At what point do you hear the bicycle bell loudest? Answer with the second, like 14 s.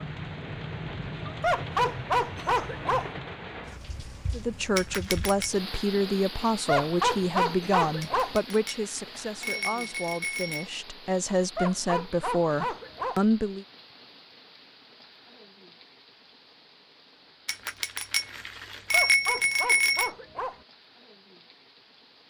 19 s.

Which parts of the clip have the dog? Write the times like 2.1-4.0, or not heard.
1.4-3.1, 6.7-8.4, 11.6-13.2, 18.9-20.6.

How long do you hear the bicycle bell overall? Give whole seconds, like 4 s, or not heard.
6 s.